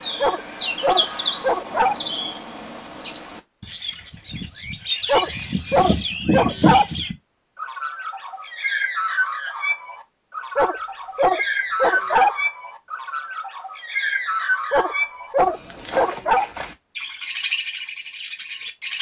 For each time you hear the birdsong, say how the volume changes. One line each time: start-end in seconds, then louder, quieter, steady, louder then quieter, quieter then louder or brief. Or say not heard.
0.0-18.9 steady.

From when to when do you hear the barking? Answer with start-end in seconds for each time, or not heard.
0.2-1.9, 5.0-6.8, 10.6-12.3, 14.7-16.4.